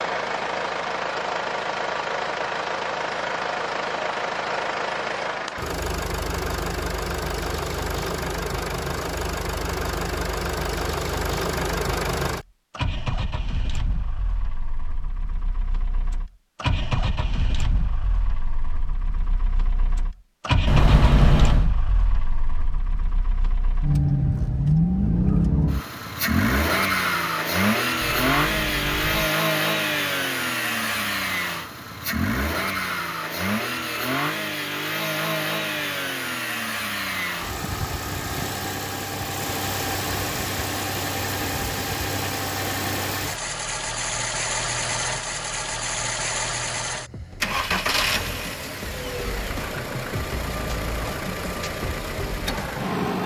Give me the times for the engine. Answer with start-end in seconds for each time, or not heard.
0.0-53.2.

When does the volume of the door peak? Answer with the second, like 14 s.
21 s.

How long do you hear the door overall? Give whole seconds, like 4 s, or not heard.
2 s.